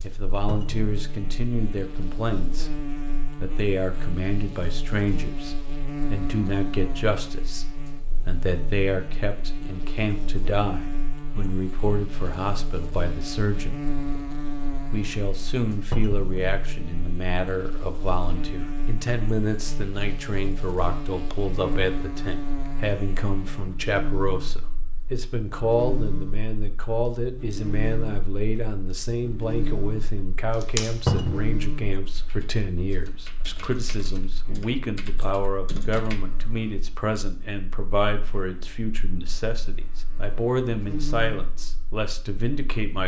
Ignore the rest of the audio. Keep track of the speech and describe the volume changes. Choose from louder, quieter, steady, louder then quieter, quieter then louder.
steady.